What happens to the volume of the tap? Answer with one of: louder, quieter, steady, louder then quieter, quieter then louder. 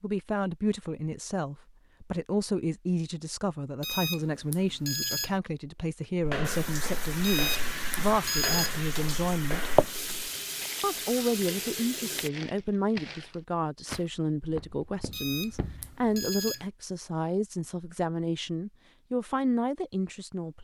louder then quieter.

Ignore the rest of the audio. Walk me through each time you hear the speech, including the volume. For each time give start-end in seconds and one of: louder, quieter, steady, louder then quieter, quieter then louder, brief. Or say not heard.
0.0-9.7 steady
10.8-20.6 steady.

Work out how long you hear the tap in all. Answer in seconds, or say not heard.
6 s.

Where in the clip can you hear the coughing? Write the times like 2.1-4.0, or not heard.
not heard.